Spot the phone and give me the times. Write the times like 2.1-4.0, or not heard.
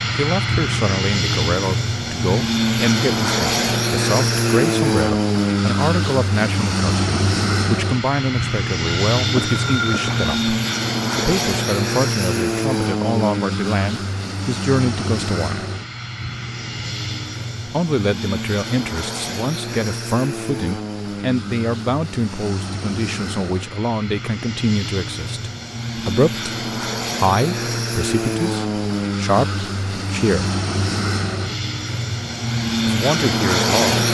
8.8-10.5.